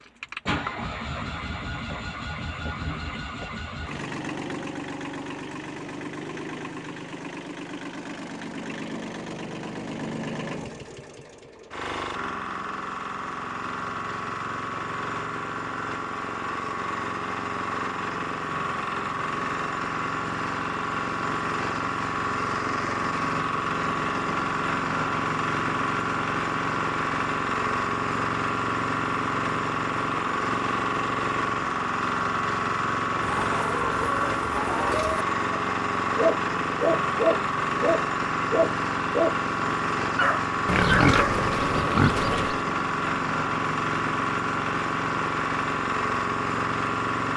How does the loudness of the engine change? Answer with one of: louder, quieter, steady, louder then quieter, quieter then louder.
louder.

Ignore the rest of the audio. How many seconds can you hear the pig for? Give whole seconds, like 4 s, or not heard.
2 s.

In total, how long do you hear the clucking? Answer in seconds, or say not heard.
2 s.